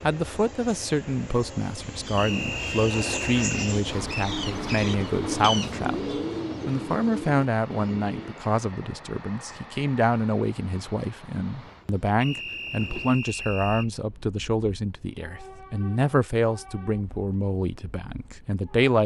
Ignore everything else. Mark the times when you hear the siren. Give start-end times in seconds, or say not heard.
not heard.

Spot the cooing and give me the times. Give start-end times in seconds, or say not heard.
2.0-8.3.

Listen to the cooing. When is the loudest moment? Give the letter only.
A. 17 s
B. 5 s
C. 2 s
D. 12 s
B.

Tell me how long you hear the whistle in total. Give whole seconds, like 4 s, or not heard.
3 s.